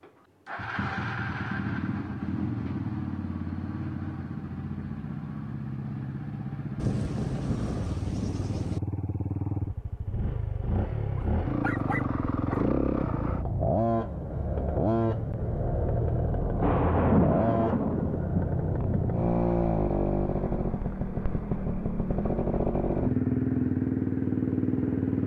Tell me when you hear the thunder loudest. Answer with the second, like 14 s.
17 s.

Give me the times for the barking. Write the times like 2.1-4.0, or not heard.
11.2-12.6.